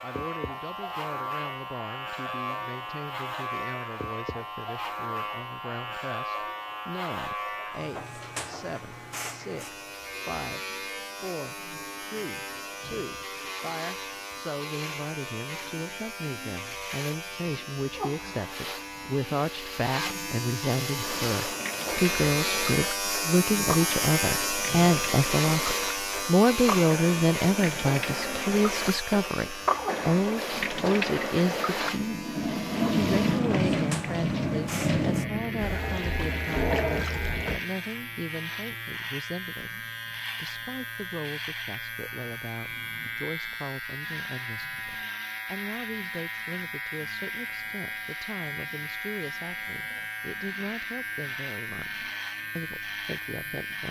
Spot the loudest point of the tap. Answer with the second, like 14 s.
33 s.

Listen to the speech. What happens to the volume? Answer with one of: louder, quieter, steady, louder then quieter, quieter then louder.
louder then quieter.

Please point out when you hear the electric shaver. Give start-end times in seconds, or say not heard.
0.0-53.8.